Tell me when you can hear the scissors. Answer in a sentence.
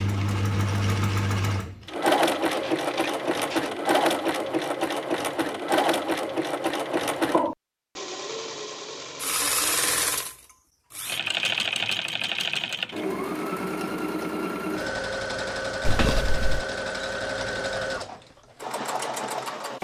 The scissors can be heard from 2.5 to 3.7 s and from 15.8 to 16.6 s.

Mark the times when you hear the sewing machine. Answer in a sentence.
The sewing machine can be heard from 0.0 to 19.7 s.